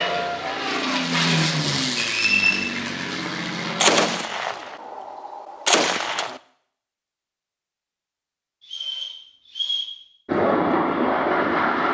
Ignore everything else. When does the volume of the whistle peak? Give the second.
2 s.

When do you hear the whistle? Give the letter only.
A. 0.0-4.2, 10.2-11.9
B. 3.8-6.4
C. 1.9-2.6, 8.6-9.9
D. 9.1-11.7
C.